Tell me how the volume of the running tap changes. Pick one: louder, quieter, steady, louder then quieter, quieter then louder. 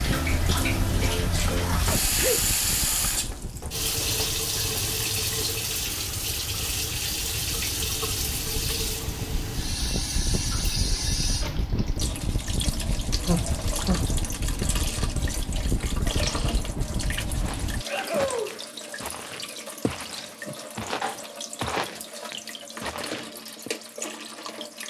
quieter.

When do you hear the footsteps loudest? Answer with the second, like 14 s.
22 s.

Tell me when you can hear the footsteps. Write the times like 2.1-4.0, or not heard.
17.4-23.7.